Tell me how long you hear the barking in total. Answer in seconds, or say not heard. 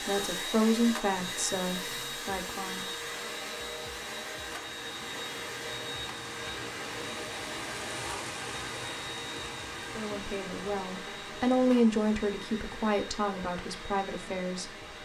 not heard.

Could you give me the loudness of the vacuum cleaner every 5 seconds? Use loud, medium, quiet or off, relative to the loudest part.
loud, loud, medium.